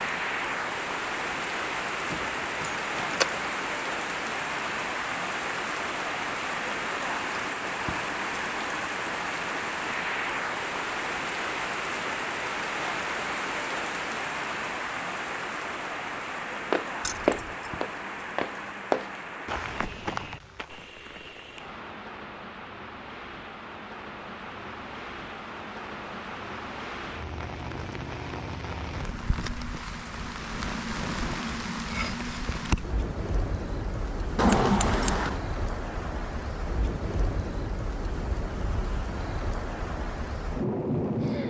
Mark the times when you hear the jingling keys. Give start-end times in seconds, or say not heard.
2.1-3.4, 17.0-17.7, 34.4-35.4.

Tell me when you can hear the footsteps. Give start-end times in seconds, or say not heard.
16.7-21.6.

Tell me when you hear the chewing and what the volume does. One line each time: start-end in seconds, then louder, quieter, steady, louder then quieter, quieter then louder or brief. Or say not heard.
not heard.